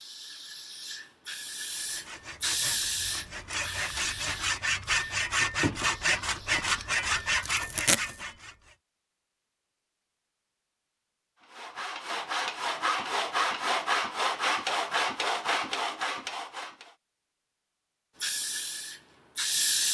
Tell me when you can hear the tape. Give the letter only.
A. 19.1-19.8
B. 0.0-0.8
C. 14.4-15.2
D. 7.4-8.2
D.